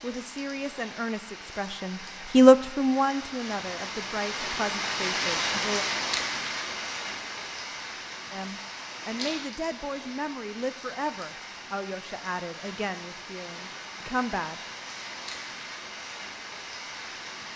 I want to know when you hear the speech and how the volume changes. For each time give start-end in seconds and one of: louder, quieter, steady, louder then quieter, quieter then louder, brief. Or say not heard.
0.0-5.8 louder then quieter
8.3-14.6 steady.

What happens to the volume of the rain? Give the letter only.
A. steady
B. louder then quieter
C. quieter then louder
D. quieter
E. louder
B.